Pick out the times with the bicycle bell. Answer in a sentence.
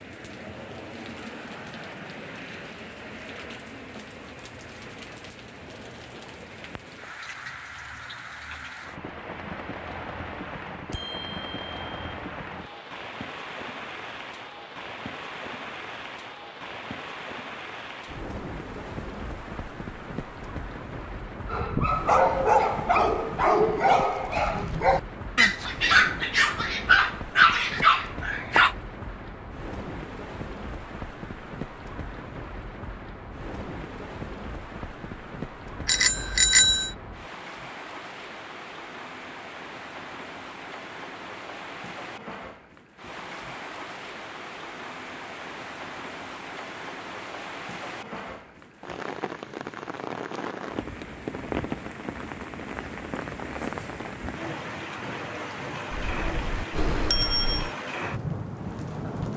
The bicycle bell can be heard from 10.9 to 12.2 s, from 35.9 to 36.9 s and from 55.9 to 57.7 s.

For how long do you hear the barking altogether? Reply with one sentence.
The barking can be heard for 7 seconds in total.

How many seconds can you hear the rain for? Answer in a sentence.
The rain can be heard for 59 seconds in total.